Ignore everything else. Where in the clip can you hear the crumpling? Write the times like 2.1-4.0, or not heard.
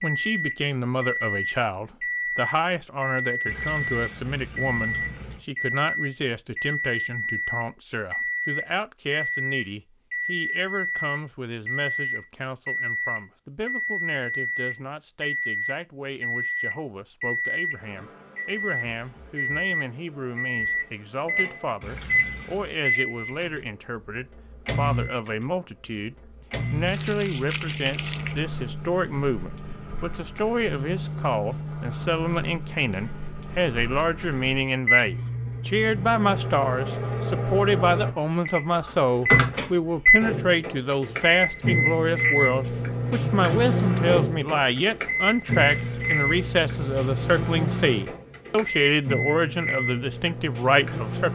26.9-28.4.